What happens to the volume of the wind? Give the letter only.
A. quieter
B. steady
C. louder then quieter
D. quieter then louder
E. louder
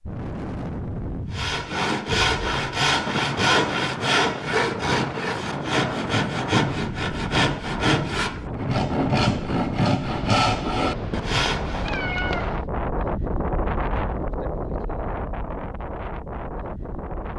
B.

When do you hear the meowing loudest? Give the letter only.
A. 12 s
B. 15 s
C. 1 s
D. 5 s
A.